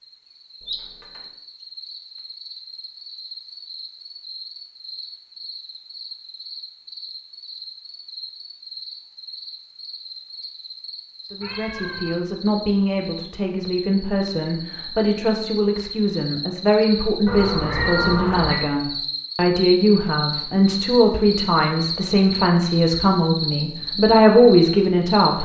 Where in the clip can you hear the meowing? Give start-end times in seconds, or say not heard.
0.6-1.2, 11.4-12.2, 17.2-18.6.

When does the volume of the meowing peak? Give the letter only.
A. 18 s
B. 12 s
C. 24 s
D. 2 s
A.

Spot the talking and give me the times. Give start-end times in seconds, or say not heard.
11.3-25.4.